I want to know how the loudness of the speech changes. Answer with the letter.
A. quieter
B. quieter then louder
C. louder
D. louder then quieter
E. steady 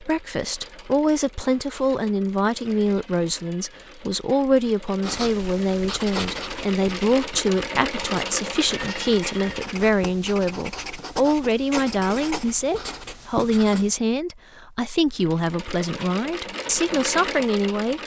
E.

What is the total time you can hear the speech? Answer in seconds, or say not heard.
18 s.